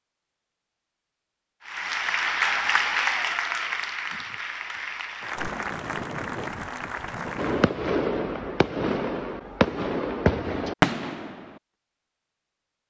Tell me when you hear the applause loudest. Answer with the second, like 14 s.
3 s.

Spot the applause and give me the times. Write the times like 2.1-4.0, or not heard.
1.6-7.7.